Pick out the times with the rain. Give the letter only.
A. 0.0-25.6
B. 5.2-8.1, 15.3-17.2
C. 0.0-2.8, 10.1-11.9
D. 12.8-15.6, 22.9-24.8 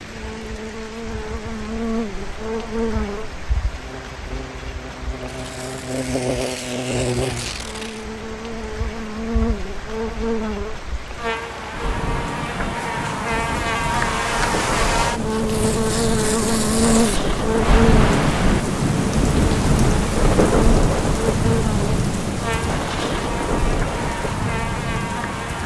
A.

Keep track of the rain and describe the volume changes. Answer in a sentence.
The volume of the rain goes up.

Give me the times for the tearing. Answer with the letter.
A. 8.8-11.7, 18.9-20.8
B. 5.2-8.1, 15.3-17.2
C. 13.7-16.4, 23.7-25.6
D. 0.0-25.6
B.